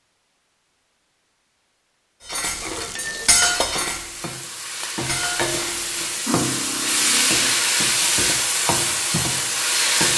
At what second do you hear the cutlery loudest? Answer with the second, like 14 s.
3 s.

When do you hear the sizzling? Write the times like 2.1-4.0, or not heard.
2.4-10.1.